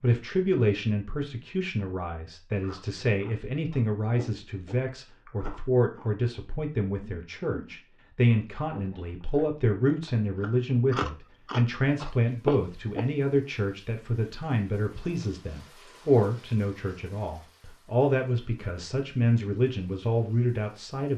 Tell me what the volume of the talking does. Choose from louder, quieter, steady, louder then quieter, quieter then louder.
steady.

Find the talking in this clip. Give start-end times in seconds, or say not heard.
0.0-21.1.